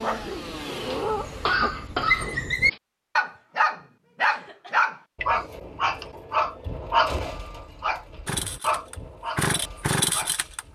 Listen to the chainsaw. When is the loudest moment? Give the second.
10 s.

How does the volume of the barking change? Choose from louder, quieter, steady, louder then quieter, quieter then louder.
louder then quieter.